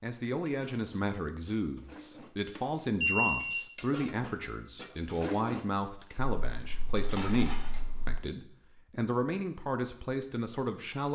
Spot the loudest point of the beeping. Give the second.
3 s.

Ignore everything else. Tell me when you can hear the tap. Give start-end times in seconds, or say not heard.
not heard.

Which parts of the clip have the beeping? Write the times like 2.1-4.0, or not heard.
2.5-3.6, 6.2-8.2.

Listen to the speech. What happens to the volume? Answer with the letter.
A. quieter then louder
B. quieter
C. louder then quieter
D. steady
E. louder
D.